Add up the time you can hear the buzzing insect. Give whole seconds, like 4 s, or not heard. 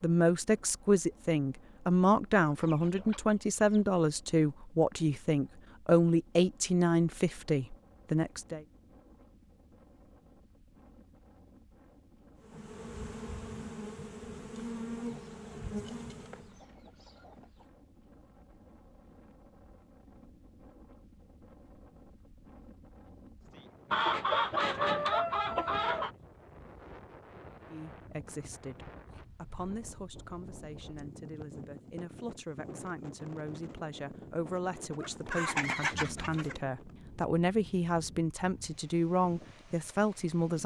4 s.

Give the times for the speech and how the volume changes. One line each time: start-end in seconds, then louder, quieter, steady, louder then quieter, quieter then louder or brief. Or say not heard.
0.0-8.6 steady
27.6-40.6 louder.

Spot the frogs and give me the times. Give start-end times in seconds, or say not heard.
not heard.